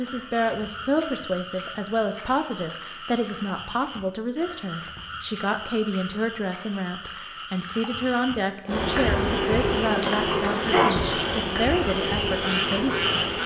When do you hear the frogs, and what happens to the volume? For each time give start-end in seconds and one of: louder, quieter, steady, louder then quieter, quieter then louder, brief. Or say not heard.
0.0-13.4 louder.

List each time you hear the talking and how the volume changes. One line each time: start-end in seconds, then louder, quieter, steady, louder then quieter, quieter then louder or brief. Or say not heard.
0.0-13.4 steady.